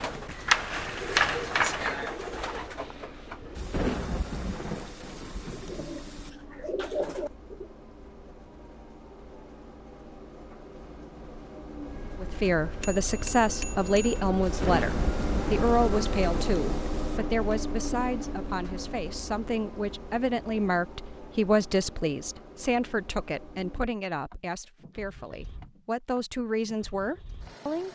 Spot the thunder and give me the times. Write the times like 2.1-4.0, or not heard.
3.5-6.3, 14.4-17.2.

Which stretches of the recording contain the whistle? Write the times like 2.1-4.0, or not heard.
not heard.